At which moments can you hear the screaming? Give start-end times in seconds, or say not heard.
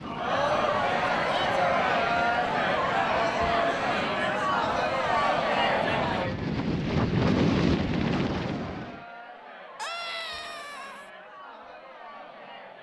9.8-11.1.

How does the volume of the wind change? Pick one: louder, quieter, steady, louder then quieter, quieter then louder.
louder.